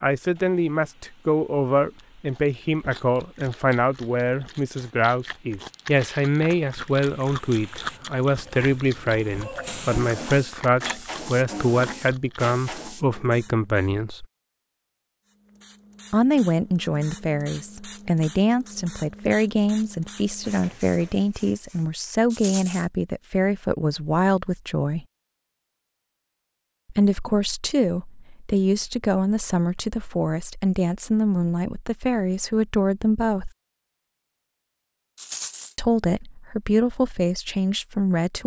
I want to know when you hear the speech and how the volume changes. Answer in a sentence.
You can hear the speech from 0.0 to 14.2 s, at a steady volume; from 16.1 to 25.1 s, at a steady volume; from 26.9 to 33.5 s, at a steady volume; and briefly from 35.8 to 38.4 s.